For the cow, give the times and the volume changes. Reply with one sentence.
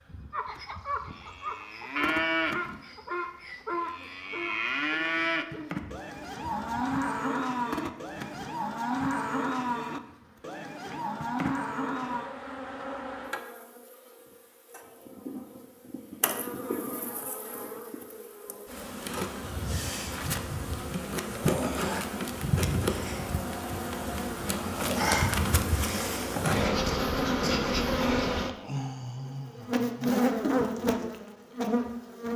You can hear the cow from 0.3 to 12.3 s, at a steady volume.